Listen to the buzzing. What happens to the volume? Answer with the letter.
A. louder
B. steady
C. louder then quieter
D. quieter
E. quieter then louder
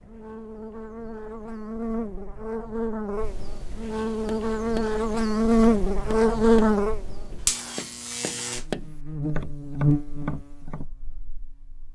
C.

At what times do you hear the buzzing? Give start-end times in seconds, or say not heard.
0.0-11.9.